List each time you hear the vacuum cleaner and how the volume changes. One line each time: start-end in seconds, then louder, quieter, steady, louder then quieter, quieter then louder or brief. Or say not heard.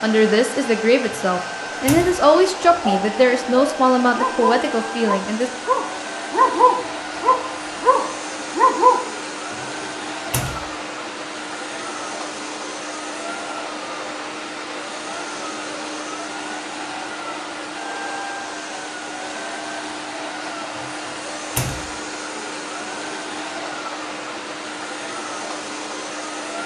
0.0-26.6 steady.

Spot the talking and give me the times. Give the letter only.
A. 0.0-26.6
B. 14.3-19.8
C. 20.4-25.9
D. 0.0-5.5
D.